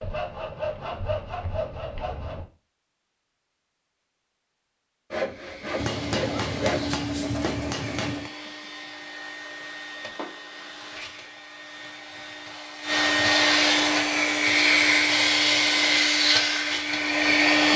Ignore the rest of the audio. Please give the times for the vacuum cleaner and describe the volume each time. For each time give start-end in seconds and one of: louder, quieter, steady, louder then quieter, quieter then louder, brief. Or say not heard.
5.2-17.7 louder.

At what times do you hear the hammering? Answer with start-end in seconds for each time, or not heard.
5.8-8.3.